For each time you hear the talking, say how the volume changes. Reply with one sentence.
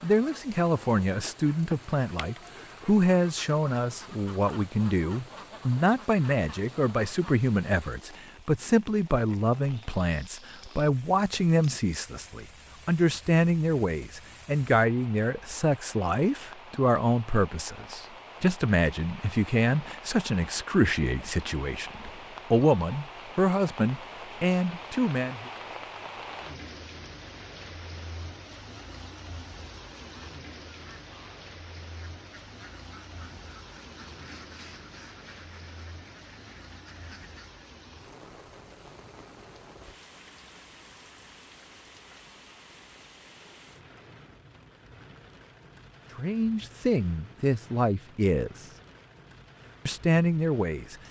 The talking can be heard from 0.0 to 25.4 s, at a steady volume; briefly from 46.1 to 48.7 s; and briefly from 49.9 to 51.0 s.